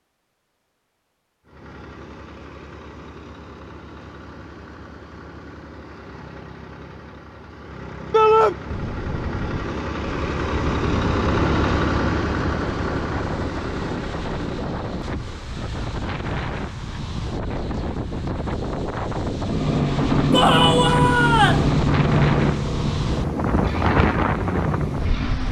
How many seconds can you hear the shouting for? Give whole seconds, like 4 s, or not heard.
2 s.